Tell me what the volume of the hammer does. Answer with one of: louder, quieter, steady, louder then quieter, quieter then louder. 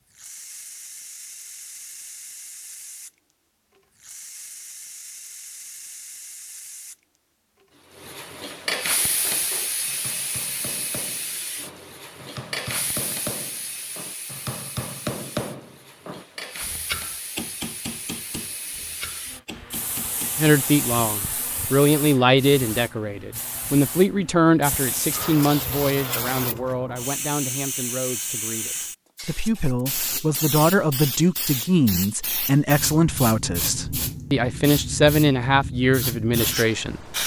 louder then quieter.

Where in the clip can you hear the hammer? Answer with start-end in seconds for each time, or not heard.
8.9-20.5.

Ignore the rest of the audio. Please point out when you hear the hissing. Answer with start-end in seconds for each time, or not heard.
0.1-37.2.